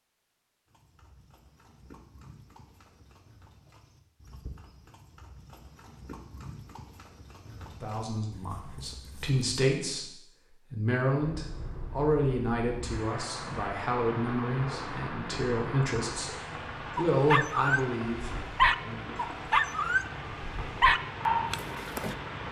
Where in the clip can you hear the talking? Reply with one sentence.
The talking can be heard from 7.6 to 19.1 s.